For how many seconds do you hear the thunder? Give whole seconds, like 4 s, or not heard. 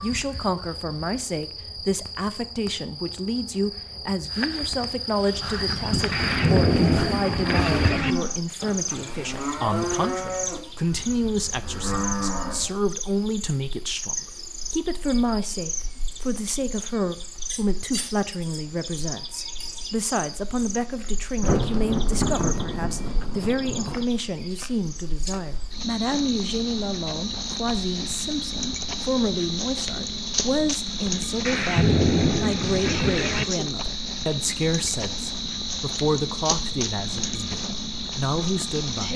7 s.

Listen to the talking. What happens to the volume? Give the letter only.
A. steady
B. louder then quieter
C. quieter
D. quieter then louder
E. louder
A.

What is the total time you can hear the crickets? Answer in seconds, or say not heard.
39 s.